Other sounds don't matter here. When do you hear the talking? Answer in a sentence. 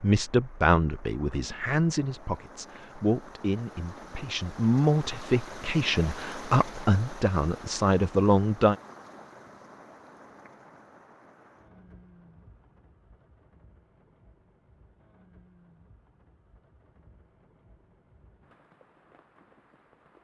The talking can be heard from 0.0 to 8.8 s.